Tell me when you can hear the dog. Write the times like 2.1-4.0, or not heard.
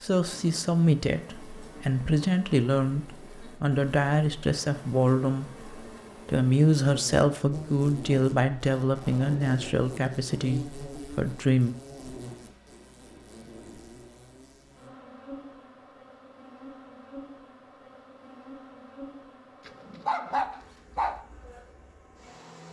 19.6-21.2.